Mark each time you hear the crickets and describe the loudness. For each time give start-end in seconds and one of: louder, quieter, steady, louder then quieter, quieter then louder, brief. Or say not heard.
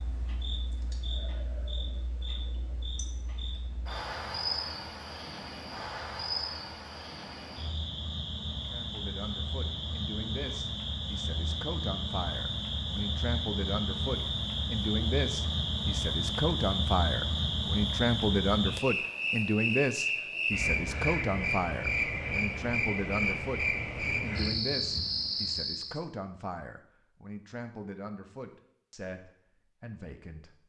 0.0-26.0 louder.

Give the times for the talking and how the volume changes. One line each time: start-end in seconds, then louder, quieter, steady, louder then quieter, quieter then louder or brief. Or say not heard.
8.7-30.6 louder then quieter.